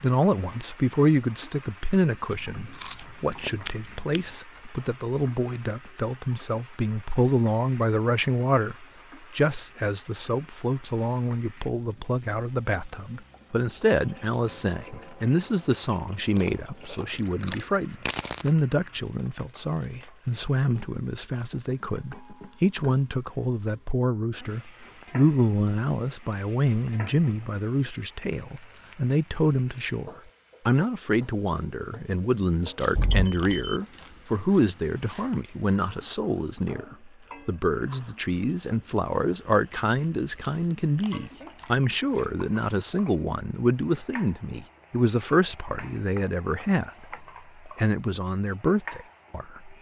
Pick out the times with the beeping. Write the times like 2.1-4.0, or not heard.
33.0-33.8.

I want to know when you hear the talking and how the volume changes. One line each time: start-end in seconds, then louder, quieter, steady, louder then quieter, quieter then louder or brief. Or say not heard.
0.0-49.7 steady.